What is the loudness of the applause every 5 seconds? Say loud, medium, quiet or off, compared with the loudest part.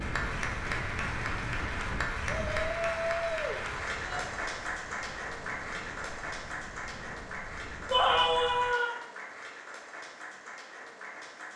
loud, medium, medium.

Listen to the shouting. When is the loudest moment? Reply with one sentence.
The loudest moment of the shouting is at 8 seconds.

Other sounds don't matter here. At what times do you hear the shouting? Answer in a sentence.
You can hear the shouting from 2.5 to 4.2 s and from 7.9 to 8.9 s.